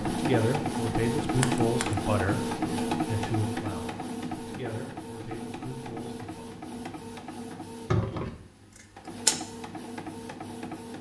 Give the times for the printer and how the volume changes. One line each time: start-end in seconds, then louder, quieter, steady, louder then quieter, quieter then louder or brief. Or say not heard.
0.0-10.9 quieter.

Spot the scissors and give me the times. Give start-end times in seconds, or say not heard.
1.4-2.0, 7.9-9.4.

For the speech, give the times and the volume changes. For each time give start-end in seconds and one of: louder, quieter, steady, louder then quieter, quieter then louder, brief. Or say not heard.
0.1-6.5 quieter.